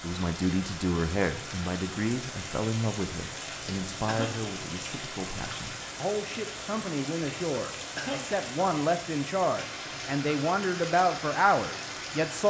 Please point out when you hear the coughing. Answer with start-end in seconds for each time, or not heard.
4.0-4.5, 8.0-8.4.